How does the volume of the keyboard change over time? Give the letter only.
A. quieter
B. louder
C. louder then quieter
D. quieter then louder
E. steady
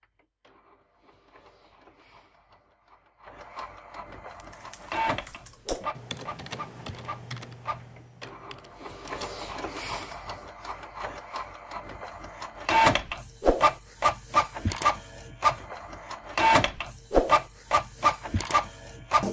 C.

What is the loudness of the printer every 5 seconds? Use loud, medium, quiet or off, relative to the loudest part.
quiet, medium, loud, loud.